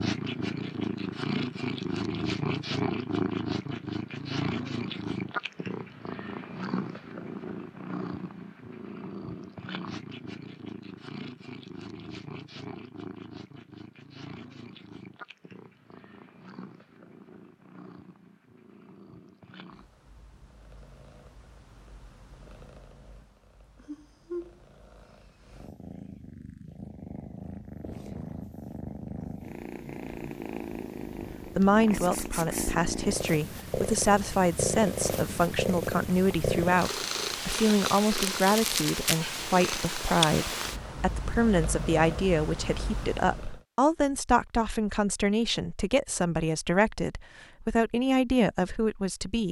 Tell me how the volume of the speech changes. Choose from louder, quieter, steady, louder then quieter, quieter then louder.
steady.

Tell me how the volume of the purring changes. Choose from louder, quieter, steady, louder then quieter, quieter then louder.
quieter then louder.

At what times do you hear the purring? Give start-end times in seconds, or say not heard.
0.0-43.6.